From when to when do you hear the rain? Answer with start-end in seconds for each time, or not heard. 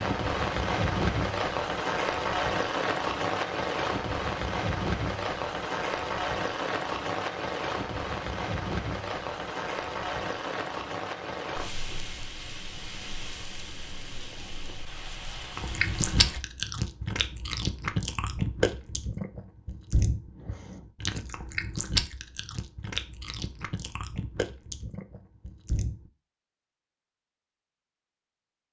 0.0-16.4.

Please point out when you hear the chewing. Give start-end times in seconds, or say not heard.
15.6-26.1.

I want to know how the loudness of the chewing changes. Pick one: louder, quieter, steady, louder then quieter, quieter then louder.
quieter.